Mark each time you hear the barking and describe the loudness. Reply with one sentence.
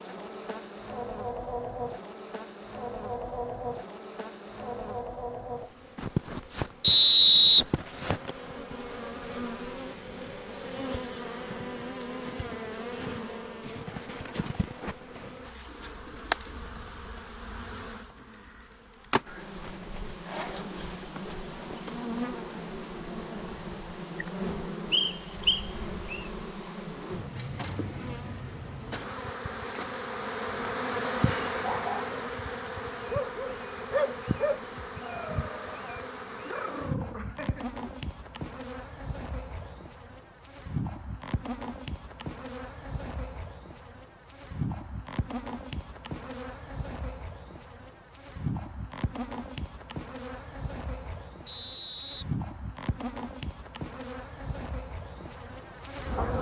The barking can be heard briefly from 31.6 to 32.1 s; and from 33.0 to 37.7 s, getting quieter.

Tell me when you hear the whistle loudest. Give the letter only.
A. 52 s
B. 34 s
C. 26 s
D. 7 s
D.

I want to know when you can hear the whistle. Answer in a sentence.
The whistle can be heard from 6.8 to 8.3 s, from 24.9 to 26.2 s and from 51.5 to 52.2 s.